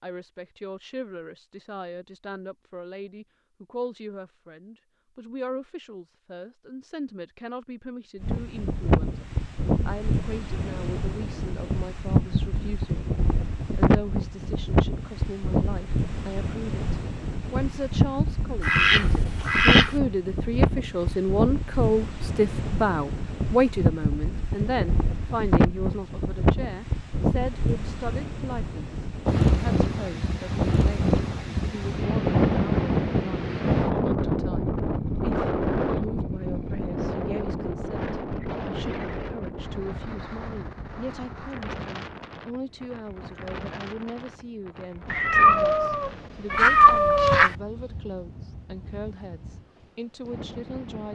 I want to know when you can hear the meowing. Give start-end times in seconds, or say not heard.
45.1-47.5.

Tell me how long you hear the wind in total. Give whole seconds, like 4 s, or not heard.
43 s.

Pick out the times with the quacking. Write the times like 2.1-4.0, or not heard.
18.6-19.9, 46.5-47.5.